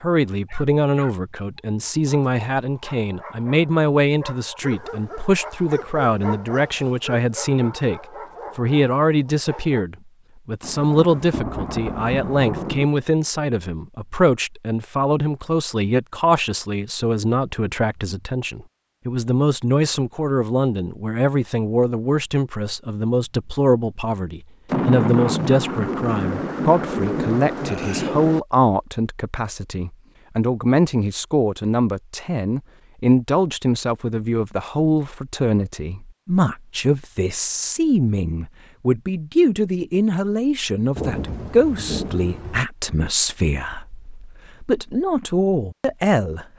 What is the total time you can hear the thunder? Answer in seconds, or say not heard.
8 s.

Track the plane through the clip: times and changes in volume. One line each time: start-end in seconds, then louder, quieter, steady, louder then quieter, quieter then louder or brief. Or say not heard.
not heard.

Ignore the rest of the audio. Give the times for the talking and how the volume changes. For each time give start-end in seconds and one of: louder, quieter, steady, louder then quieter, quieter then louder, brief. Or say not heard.
0.0-46.5 steady.